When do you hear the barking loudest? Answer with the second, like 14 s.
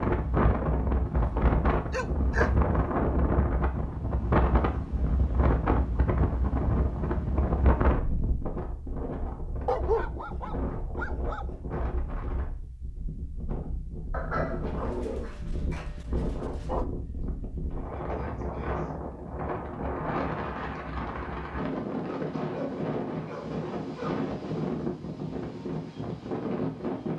10 s.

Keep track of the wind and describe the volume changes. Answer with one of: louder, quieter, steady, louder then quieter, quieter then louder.
quieter then louder.